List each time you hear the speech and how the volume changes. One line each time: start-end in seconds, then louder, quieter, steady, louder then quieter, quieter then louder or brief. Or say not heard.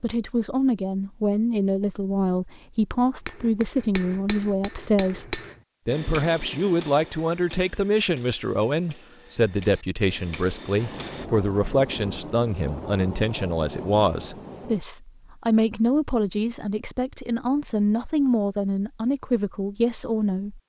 0.0-20.6 steady.